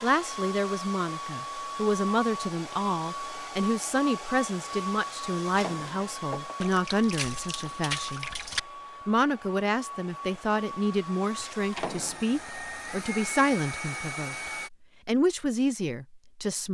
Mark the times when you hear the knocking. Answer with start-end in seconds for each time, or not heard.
5.5-6.5, 11.8-12.3.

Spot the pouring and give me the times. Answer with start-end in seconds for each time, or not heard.
6.6-8.6.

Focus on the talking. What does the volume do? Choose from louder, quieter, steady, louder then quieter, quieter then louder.
steady.